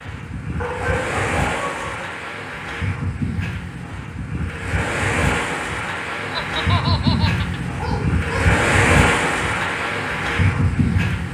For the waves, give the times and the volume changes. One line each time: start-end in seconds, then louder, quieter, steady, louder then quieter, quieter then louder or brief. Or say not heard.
0.0-11.2 louder.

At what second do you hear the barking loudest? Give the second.
1 s.